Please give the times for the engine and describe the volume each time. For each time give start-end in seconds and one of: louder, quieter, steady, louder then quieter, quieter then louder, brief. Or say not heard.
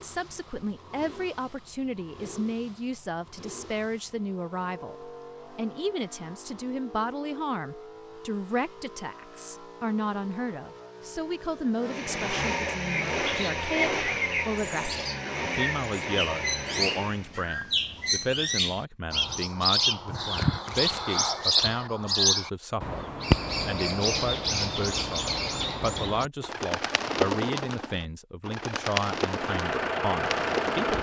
0.0-17.4 louder
29.1-30.9 brief.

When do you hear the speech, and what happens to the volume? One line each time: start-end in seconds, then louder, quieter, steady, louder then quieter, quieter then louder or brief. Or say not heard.
0.0-30.9 steady.